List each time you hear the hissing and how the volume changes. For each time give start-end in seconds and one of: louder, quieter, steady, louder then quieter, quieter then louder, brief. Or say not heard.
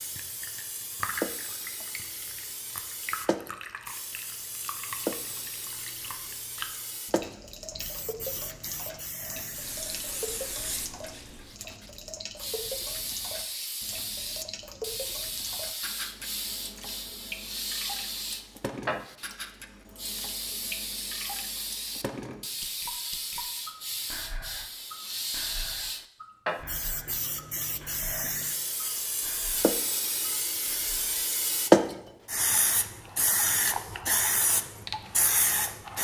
0.0-35.9 louder.